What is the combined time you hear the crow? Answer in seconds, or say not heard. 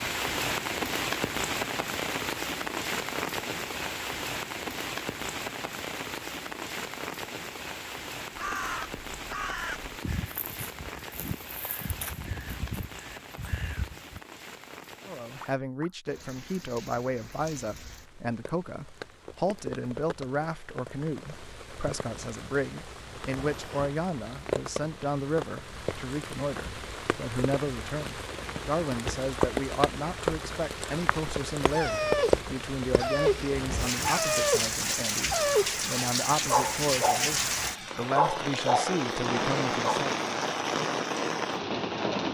6 s.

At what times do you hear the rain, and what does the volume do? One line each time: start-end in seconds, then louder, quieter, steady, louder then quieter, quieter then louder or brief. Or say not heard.
0.0-42.2 quieter then louder.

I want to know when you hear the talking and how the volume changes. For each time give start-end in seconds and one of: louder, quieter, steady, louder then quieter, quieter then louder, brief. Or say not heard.
15.1-40.1 steady.